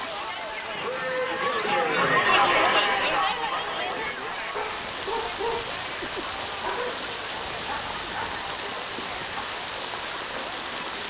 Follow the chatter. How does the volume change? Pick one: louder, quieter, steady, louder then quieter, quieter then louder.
quieter.